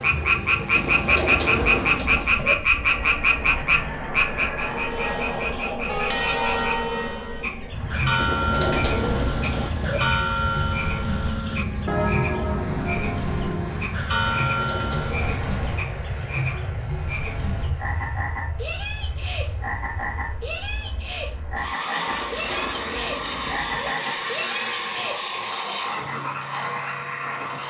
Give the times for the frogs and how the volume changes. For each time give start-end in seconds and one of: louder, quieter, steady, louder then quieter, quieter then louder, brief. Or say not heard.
0.0-27.6 quieter.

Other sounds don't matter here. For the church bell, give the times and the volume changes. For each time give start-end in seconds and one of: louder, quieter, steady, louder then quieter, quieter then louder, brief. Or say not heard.
4.6-15.2 steady.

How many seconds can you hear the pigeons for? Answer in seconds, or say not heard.
7 s.